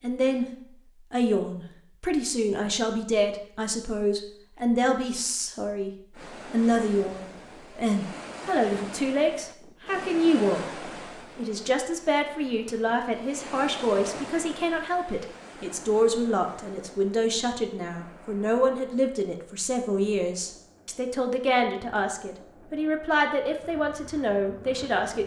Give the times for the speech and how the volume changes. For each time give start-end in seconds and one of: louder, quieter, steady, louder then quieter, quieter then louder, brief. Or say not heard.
0.0-0.5 brief
1.1-5.9 steady
6.5-25.2 steady.